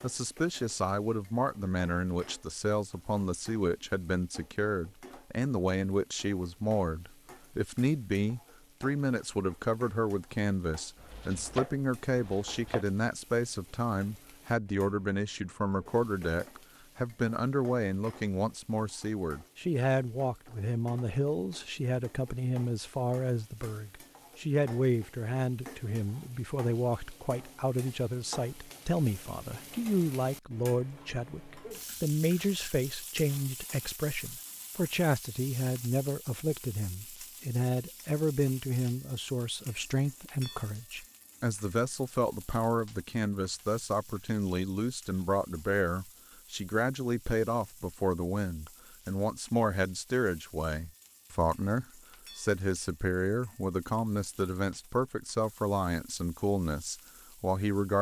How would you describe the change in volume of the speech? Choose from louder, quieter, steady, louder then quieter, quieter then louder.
steady.